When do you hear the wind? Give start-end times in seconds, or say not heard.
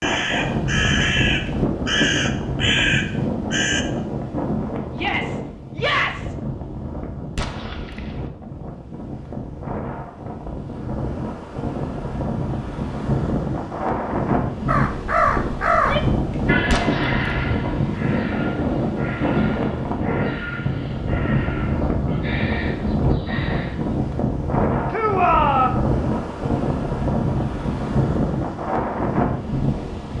0.0-30.1.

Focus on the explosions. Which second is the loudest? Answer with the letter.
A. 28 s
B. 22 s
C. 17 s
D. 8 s
C.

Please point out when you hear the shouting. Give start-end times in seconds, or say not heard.
5.0-6.3, 15.7-16.6, 24.9-25.8.